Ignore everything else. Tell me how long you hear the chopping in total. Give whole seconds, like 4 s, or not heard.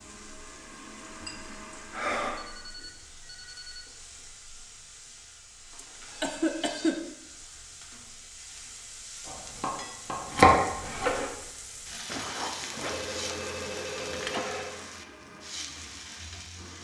2 s.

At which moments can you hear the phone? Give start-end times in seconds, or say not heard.
1.9-3.9, 5.7-7.0, 12.1-14.8.